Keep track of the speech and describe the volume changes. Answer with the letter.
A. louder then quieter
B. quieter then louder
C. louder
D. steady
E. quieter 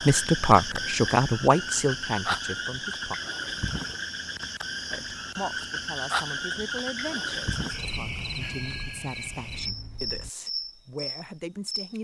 E.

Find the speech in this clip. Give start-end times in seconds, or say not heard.
0.1-3.2, 4.9-11.9.